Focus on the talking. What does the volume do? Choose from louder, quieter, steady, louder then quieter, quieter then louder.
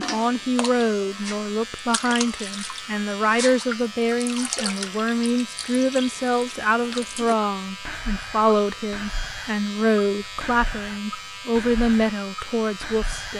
steady.